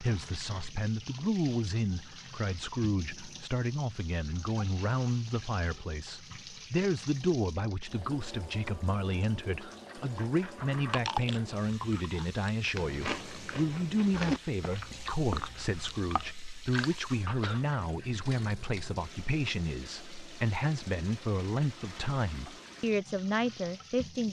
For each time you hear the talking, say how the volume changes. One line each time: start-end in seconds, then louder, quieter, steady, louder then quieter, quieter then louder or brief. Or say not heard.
0.0-24.2 steady.